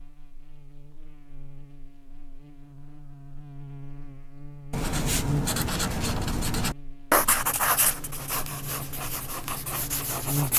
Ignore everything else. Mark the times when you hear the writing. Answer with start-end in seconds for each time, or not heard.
4.7-10.5.